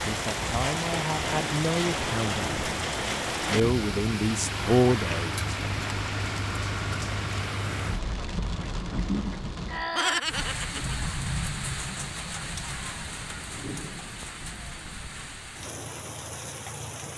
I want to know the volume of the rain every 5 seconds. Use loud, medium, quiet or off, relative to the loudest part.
loud, loud, loud, medium.